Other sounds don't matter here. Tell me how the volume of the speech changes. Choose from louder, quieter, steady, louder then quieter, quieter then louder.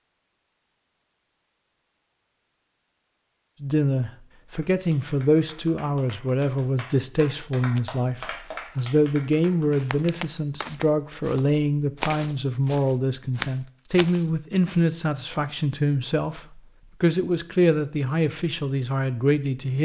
steady.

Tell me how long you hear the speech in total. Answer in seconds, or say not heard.
16 s.